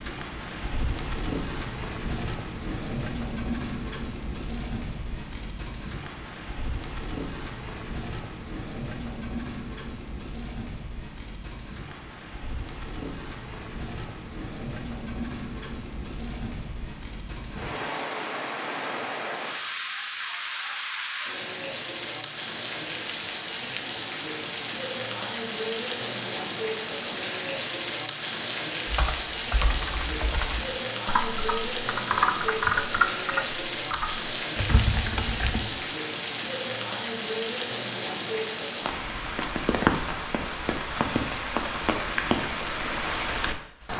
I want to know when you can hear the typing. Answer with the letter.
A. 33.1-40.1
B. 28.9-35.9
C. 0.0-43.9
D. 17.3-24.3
B.